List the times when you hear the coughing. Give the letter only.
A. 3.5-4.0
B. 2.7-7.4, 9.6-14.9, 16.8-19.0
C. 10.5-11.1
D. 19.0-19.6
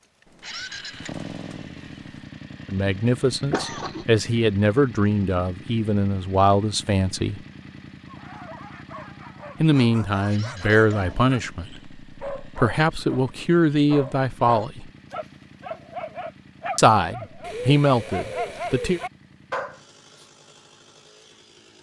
A.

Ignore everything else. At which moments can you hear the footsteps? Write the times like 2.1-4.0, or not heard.
not heard.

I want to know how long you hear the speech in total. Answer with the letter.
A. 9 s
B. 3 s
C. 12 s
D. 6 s
C.